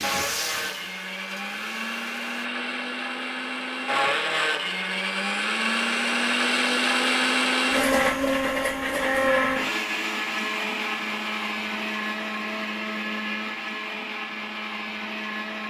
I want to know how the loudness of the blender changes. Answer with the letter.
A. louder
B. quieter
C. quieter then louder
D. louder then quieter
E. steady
D.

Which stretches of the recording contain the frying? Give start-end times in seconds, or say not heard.
0.0-2.5.